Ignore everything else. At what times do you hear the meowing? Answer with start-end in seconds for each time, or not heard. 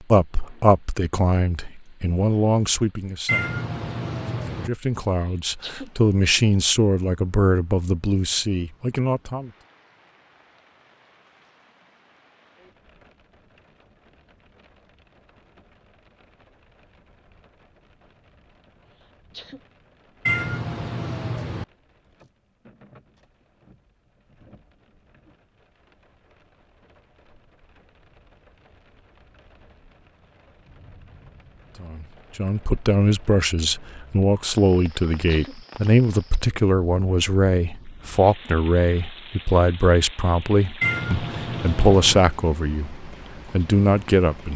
3.2-4.7, 20.2-21.6, 40.8-42.2.